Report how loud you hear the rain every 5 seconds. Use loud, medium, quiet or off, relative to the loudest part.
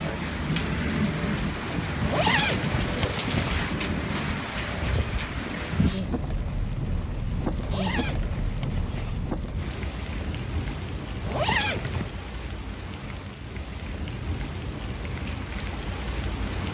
loud, loud, medium, medium.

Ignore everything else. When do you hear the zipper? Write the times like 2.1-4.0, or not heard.
2.0-3.6, 7.6-9.2, 11.2-12.1.